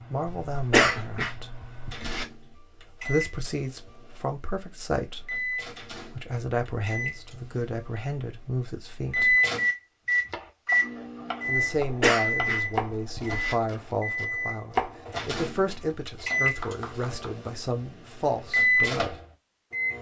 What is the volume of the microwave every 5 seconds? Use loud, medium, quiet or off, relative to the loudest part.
quiet, loud, loud, loud.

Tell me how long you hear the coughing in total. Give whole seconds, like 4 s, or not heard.
4 s.